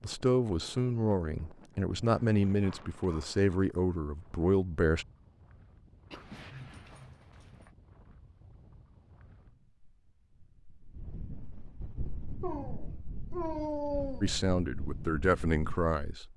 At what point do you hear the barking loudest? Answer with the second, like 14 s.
14 s.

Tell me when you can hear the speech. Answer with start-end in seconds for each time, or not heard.
0.0-5.0, 14.2-16.2.